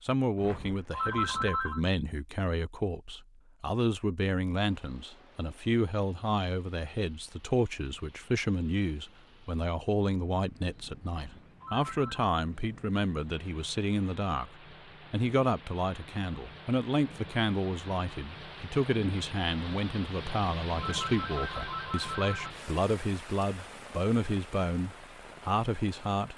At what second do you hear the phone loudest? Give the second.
1 s.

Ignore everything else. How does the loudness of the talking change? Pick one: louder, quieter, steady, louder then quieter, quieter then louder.
steady.